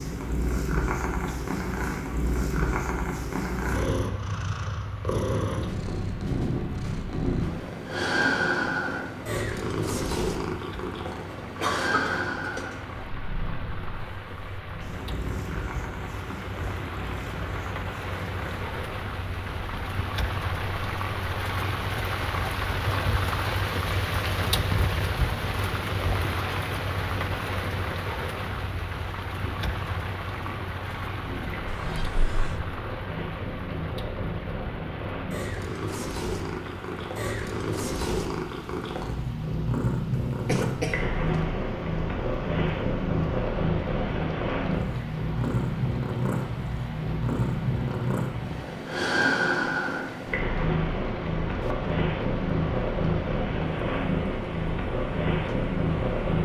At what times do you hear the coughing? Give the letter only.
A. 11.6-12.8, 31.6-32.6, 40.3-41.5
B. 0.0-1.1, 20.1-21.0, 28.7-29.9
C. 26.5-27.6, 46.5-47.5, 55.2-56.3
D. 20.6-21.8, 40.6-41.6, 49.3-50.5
A.